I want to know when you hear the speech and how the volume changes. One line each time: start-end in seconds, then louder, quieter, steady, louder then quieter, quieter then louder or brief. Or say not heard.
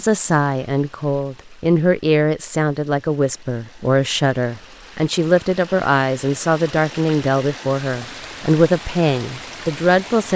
0.0-10.3 steady.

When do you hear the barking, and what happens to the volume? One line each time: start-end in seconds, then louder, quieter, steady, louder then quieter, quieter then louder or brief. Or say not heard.
not heard.